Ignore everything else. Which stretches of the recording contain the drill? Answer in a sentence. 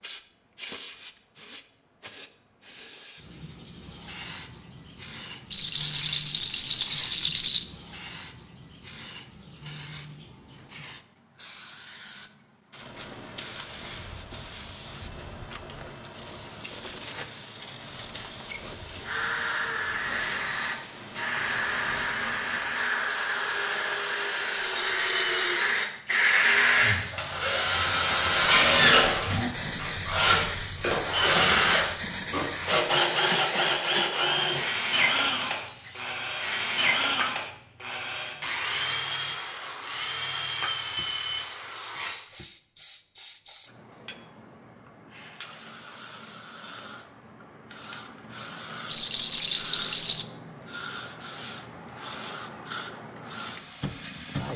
The drill can be heard from 19.0 to 42.1 s.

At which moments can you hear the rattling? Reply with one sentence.
You can hear the rattling from 5.5 to 7.7 s, from 24.6 to 25.6 s and from 48.9 to 50.2 s.